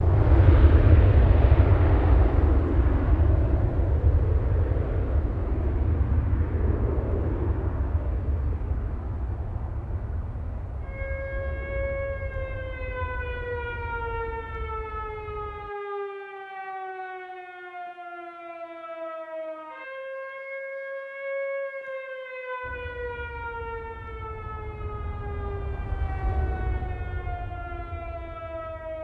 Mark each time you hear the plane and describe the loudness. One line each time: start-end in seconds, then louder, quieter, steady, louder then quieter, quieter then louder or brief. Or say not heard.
0.0-15.7 quieter
22.6-29.0 louder then quieter.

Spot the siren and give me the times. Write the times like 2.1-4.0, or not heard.
10.8-29.0.